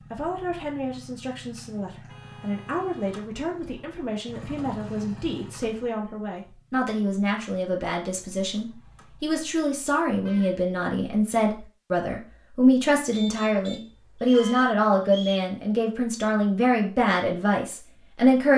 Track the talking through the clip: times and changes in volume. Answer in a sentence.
You can hear the talking from 0.0 to 18.5 s, getting louder.